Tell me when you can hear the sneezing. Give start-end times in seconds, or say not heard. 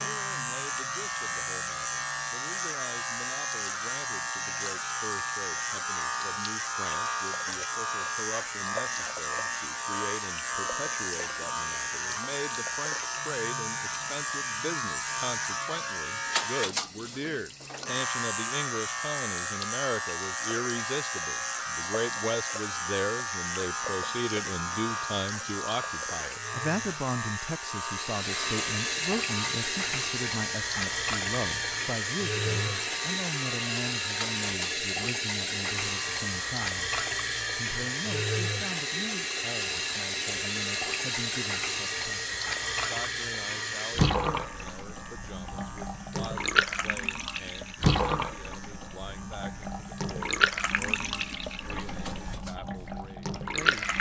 not heard.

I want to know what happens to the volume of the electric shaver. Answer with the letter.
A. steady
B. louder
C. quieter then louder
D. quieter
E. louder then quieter
D.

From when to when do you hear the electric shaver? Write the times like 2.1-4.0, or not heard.
0.0-53.9.